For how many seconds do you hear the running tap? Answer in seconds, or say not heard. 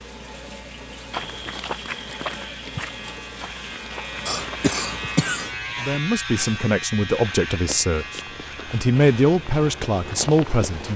5 s.